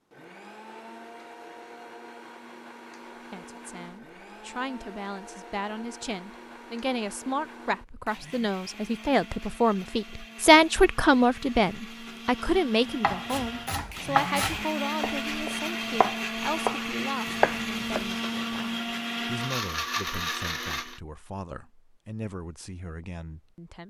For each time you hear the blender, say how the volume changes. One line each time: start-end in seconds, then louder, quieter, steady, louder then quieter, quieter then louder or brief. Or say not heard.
0.1-21.0 louder.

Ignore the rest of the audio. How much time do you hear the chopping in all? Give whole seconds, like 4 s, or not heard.
5 s.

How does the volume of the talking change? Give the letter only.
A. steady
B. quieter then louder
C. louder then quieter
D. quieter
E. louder
C.